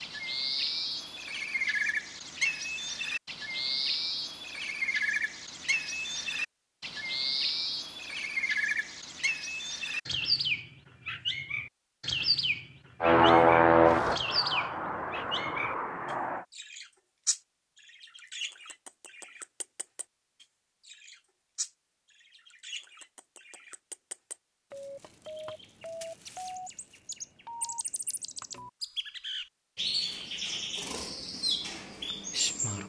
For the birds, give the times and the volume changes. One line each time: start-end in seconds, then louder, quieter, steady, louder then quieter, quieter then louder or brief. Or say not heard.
0.0-32.8 quieter then louder.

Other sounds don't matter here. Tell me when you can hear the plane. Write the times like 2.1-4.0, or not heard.
13.0-16.4.